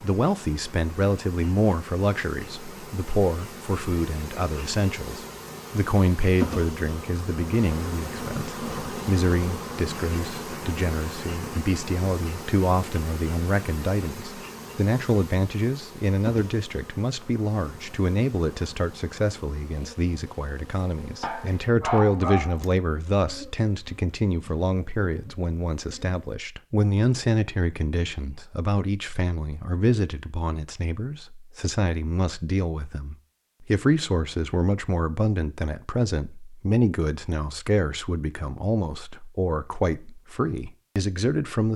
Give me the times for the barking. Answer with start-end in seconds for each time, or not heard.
21.2-22.6.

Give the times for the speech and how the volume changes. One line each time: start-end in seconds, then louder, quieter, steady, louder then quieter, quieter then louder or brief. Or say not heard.
0.0-41.7 steady.